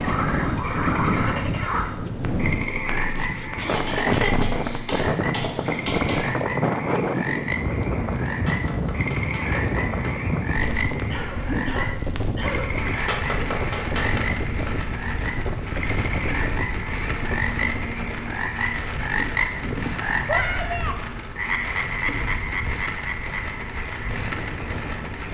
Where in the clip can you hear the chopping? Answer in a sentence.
The chopping can be heard from 8.3 to 10.2 s and from 12.9 to 14.8 s.